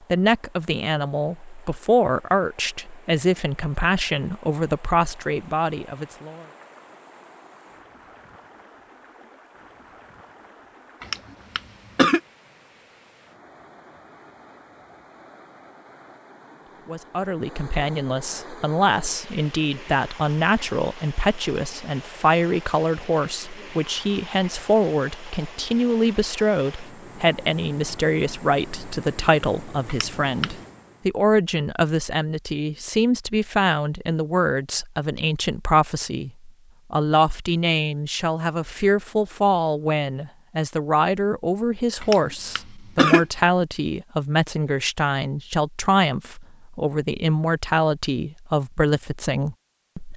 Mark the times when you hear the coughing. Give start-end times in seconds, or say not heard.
11.0-12.2, 29.9-30.5, 42.0-43.2.